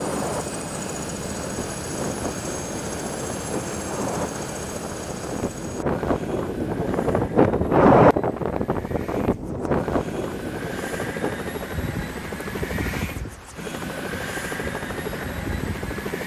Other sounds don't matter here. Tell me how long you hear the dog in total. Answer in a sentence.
The dog can't be heard in this clip.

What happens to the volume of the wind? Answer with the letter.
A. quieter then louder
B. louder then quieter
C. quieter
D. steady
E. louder
B.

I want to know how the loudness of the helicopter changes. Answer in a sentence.
The loudness of the helicopter goes down, then up.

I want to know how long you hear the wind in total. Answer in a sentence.
The wind can be heard for 16 seconds in total.